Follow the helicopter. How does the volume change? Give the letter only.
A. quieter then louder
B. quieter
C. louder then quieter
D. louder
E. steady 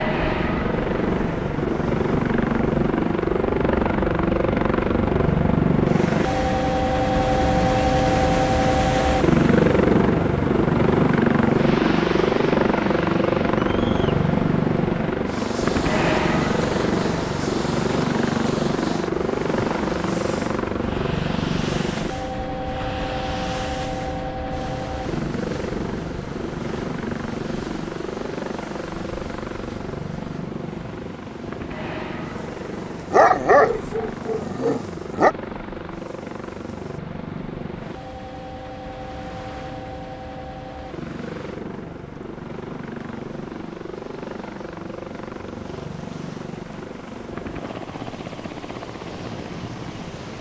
B.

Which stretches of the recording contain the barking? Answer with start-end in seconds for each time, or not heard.
33.1-35.3.